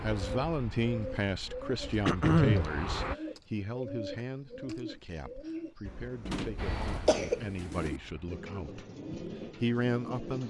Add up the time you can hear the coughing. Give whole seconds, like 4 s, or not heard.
2 s.